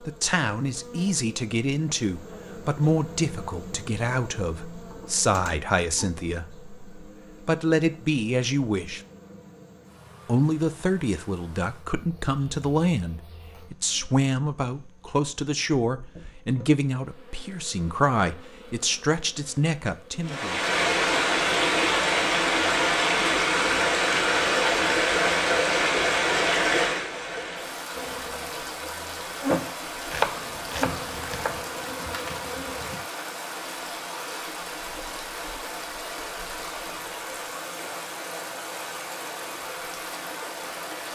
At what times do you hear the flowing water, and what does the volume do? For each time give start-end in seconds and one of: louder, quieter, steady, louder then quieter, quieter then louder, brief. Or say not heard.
20.2-41.1 quieter.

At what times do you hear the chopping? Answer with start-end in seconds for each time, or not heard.
30.1-31.6.